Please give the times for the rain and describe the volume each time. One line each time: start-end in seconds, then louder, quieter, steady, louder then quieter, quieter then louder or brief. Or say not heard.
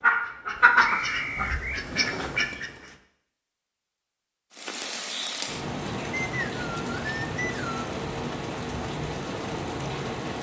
4.5-10.3 steady.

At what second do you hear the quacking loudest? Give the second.
1 s.